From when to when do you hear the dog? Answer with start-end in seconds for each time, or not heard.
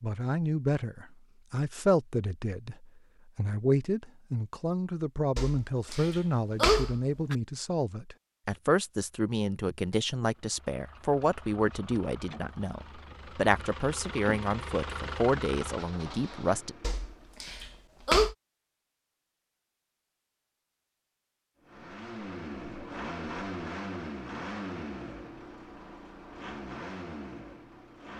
5.3-7.3, 16.8-18.4.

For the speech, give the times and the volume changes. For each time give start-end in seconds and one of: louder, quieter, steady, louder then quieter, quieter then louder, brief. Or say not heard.
0.0-16.8 steady.